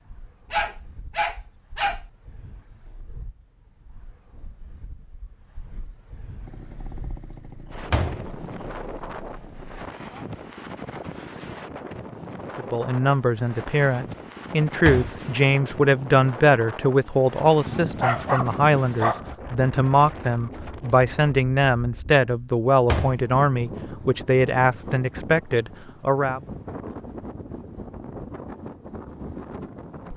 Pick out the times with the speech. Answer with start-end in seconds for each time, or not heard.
12.6-26.4.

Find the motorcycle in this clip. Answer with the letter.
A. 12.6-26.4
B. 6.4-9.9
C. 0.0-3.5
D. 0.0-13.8
B.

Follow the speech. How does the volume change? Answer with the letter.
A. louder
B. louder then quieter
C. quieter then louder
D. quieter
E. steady
E.